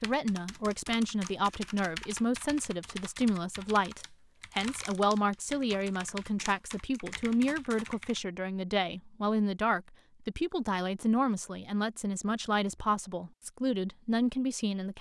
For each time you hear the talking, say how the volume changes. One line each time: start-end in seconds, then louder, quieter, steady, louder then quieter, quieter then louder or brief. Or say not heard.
0.0-14.9 steady.